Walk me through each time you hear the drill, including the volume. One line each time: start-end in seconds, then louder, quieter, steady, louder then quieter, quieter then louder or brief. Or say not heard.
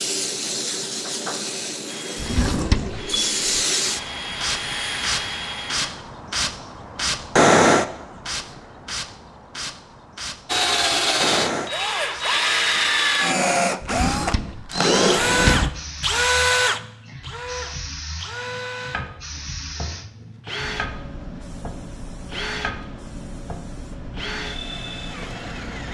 1.9-6.0 louder
10.4-25.9 quieter.